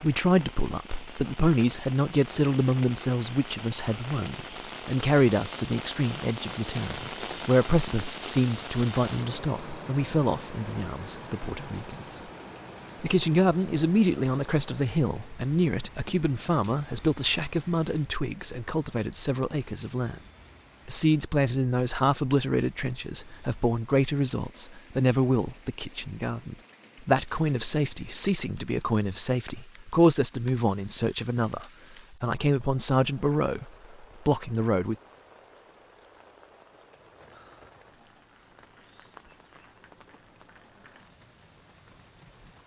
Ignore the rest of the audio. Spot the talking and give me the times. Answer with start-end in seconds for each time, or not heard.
0.0-12.2, 13.0-20.2, 20.9-35.0.